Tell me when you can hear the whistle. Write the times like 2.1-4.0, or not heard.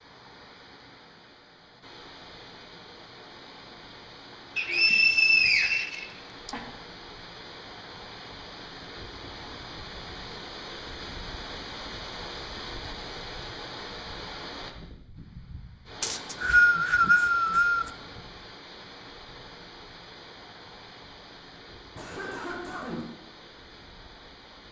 4.5-6.5, 16.0-17.9.